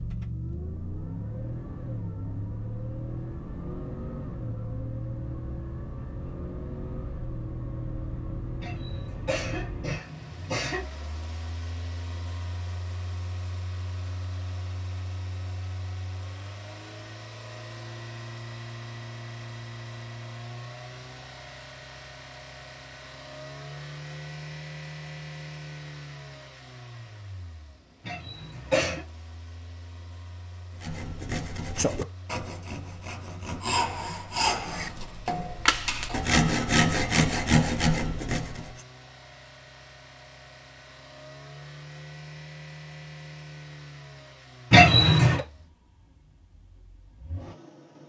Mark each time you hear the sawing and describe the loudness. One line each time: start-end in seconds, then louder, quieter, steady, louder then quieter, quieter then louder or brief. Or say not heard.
30.8-38.7 louder.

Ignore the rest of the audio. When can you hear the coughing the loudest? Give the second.
45 s.